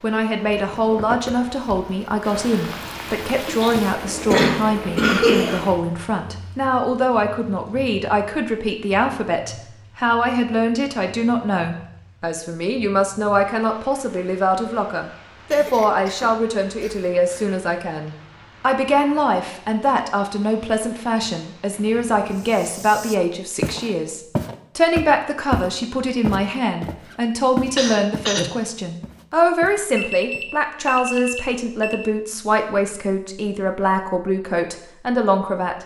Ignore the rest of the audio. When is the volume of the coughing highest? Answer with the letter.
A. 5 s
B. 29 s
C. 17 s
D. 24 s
A.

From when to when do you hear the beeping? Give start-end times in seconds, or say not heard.
29.9-32.1.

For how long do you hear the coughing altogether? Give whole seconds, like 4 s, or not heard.
5 s.